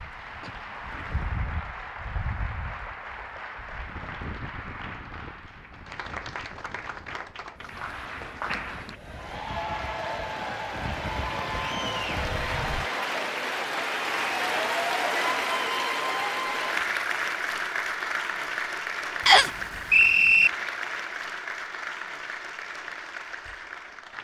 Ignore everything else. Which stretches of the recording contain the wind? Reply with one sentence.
The wind can be heard from 0.0 to 12.9 s.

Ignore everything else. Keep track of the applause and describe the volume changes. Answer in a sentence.
The volume of the applause goes up, then down.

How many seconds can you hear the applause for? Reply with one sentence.
The applause can be heard for 24 seconds in total.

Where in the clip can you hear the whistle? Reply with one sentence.
You can hear the whistle from 19.2 to 20.5 s.